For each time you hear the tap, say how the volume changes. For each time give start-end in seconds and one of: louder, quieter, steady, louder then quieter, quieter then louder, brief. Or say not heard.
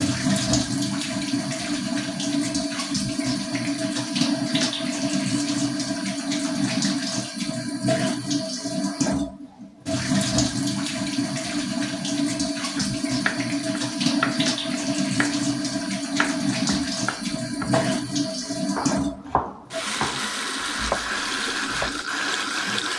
0.0-22.9 steady.